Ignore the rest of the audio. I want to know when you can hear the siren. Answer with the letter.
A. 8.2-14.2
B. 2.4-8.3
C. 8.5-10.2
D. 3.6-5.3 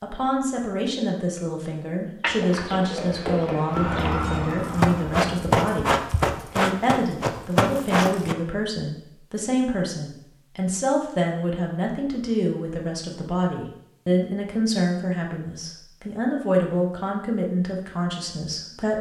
D.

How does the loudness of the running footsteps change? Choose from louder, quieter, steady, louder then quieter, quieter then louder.
louder.